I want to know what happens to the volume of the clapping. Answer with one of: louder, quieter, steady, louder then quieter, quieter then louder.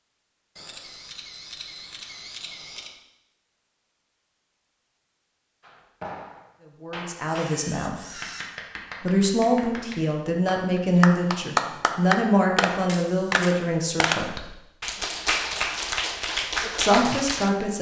louder.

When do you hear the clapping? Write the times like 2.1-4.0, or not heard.
5.6-17.5.